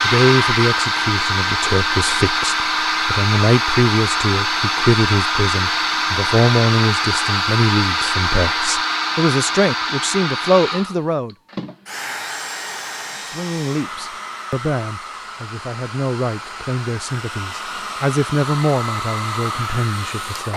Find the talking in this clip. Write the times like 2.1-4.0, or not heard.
0.0-11.3, 13.2-20.5.